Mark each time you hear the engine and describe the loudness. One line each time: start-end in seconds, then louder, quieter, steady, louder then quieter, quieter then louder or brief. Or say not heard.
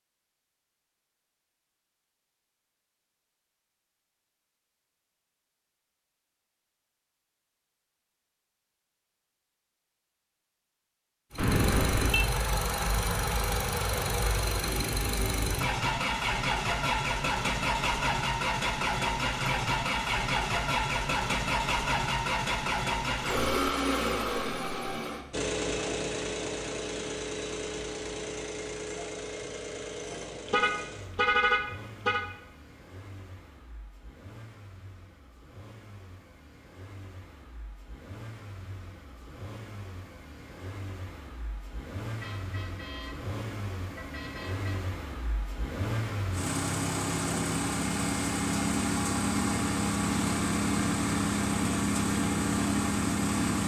11.3-53.6 quieter then louder.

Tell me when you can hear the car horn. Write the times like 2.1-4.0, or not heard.
11.3-12.2, 30.4-32.2, 42.2-44.8.